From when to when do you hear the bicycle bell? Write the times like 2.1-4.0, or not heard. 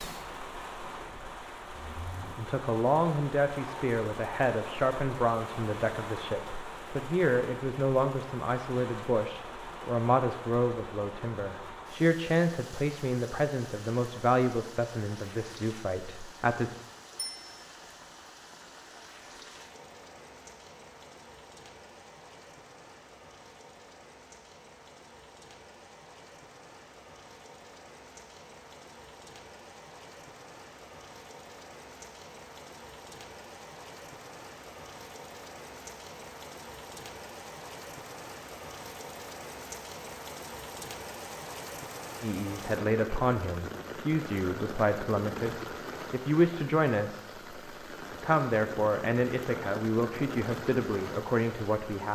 17.1-17.6.